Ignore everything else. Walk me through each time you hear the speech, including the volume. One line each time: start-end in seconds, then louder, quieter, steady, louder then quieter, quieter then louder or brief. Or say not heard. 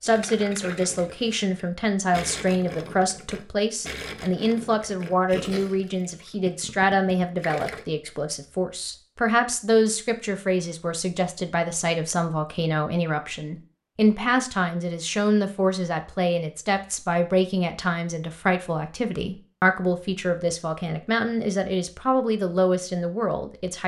0.0-23.8 steady.